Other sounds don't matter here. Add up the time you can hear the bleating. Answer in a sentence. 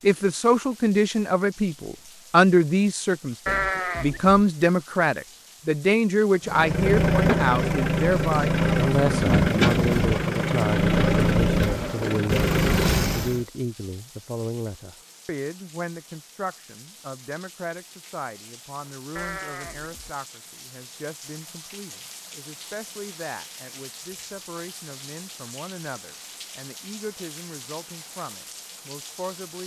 You can hear the bleating for 2 seconds altogether.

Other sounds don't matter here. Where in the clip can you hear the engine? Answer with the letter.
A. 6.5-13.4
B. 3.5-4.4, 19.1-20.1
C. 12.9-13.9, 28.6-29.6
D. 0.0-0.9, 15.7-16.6
A.